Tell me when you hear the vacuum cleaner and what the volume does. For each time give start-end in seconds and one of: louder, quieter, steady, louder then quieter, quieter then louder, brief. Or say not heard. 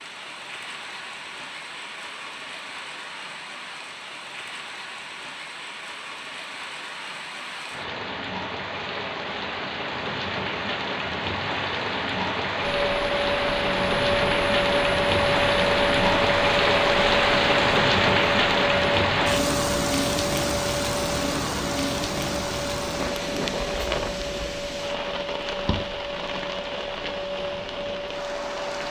12.6-28.8 quieter.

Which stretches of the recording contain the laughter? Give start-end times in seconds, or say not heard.
not heard.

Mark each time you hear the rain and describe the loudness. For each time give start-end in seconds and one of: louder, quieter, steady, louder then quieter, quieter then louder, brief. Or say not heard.
0.0-28.8 louder then quieter.